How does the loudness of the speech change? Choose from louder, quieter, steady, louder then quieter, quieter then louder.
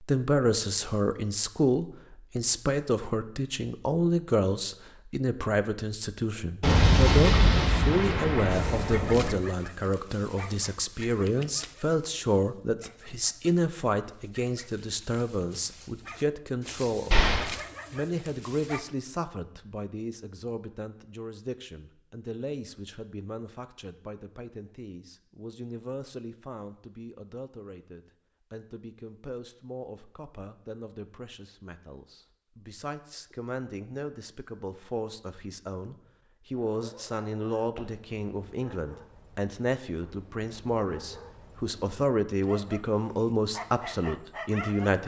quieter then louder.